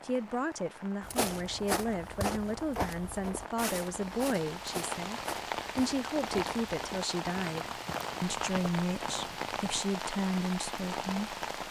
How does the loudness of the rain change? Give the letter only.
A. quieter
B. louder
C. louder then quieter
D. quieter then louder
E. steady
B.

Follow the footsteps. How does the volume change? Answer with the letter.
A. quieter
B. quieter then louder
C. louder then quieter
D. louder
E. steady
A.